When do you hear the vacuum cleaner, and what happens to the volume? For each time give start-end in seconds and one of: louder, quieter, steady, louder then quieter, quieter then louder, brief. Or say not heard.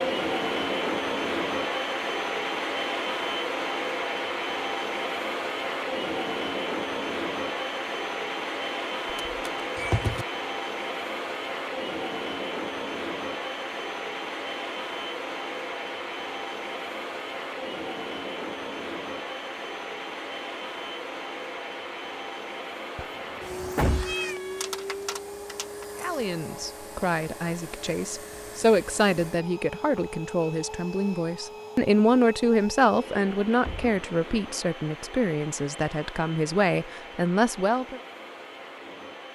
0.0-39.3 quieter.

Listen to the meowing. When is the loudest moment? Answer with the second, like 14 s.
10 s.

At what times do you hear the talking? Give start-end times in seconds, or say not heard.
25.9-38.0.